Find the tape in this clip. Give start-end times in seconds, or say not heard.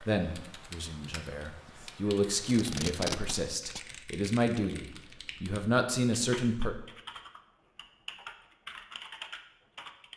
2.5-3.8.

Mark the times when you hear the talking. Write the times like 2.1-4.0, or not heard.
0.1-6.8.